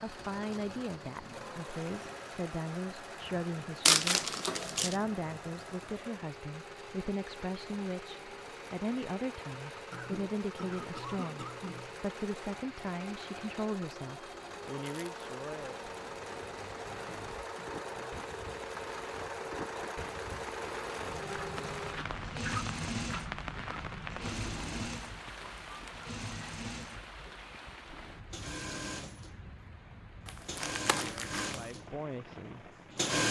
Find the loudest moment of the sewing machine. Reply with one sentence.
The volume of the sewing machine peaks at 33 seconds.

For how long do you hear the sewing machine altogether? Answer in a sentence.
The sewing machine can be heard for 33 seconds in total.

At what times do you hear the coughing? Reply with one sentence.
The coughing can be heard from 9.9 to 11.9 s and from 16.9 to 18.4 s.